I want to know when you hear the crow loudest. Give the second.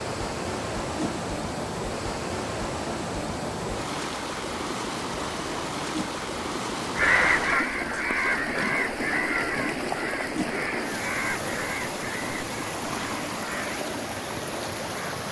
7 s.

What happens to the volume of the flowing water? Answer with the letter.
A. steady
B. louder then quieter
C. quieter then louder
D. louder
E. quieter
A.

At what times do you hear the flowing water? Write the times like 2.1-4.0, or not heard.
0.0-15.2.